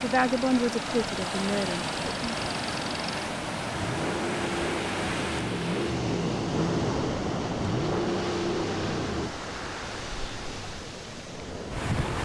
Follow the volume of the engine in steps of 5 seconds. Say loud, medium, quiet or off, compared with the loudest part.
medium, loud, off.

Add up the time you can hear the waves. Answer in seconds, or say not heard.
12 s.